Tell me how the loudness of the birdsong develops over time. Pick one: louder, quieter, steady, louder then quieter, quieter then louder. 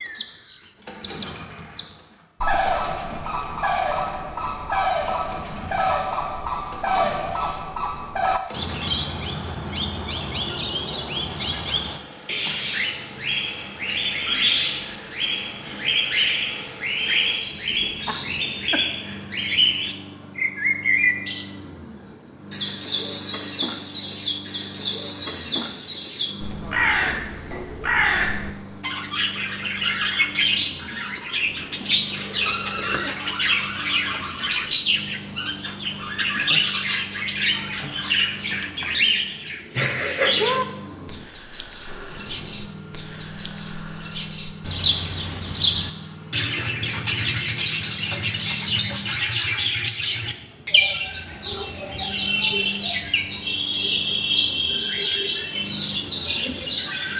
steady.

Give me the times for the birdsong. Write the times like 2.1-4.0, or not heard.
0.0-57.1.